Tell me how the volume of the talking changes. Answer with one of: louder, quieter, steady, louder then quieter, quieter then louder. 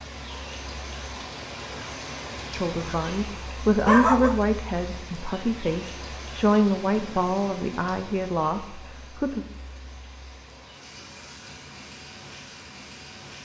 quieter.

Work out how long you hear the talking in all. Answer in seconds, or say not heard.
7 s.